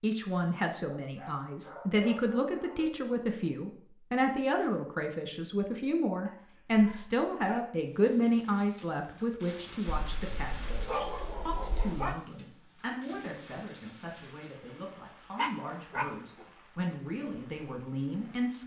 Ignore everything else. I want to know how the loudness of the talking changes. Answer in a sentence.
The loudness of the talking goes down.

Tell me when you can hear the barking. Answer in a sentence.
The barking can be heard from 0.8 to 2.9 s, from 6.2 to 7.7 s, from 9.9 to 12.2 s and from 15.3 to 16.4 s.